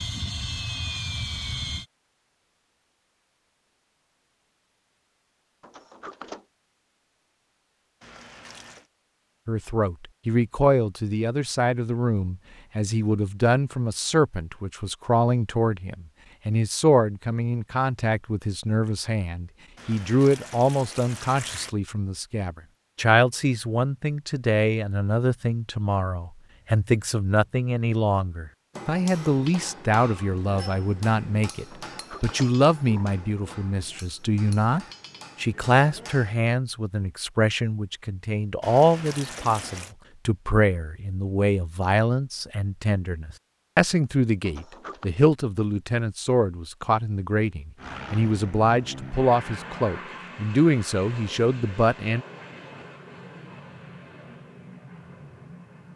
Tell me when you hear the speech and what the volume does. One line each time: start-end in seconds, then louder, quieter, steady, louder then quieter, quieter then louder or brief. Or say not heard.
9.4-52.2 steady.